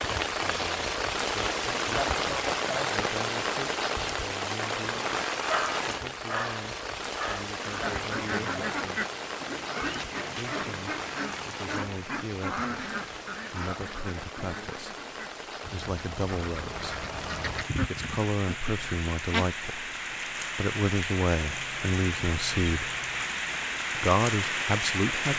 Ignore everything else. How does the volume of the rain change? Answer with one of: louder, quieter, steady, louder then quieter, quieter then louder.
quieter then louder.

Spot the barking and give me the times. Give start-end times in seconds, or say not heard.
5.5-7.5.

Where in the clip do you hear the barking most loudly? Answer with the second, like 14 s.
6 s.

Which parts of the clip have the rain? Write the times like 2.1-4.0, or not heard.
0.0-25.3.